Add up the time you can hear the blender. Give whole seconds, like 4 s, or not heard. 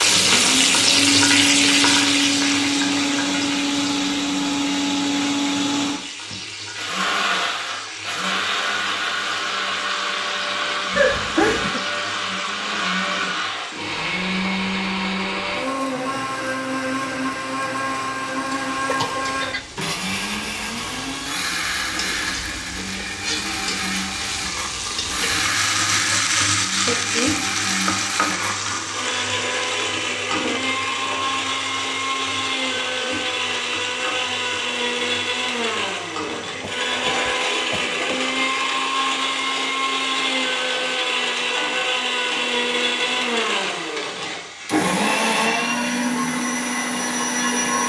48 s.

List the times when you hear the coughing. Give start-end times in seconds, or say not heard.
10.9-11.8, 18.9-19.6, 36.6-38.2.